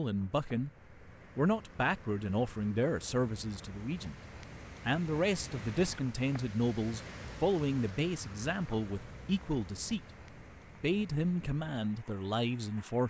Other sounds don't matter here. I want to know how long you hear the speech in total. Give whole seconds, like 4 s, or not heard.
11 s.